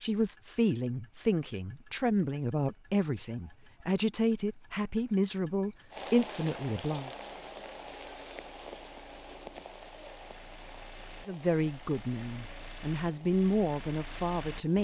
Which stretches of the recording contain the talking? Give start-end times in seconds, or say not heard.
0.0-7.1, 11.2-14.7.